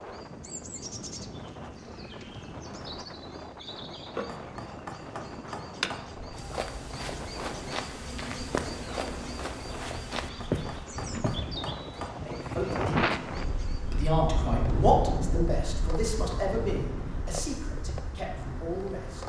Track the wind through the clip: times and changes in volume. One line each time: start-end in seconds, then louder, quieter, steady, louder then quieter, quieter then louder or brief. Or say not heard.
0.0-19.2 louder then quieter.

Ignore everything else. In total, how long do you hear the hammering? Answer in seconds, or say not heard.
4 s.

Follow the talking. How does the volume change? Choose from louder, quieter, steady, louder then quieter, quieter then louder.
louder then quieter.